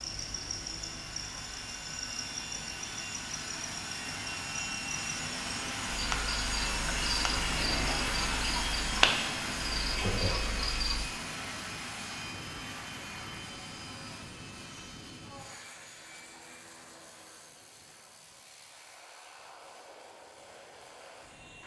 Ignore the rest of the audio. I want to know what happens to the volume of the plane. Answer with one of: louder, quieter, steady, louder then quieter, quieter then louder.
louder then quieter.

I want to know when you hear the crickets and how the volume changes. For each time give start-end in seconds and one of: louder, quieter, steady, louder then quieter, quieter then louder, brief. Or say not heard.
0.0-11.1 louder.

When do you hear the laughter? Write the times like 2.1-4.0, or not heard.
9.9-10.7.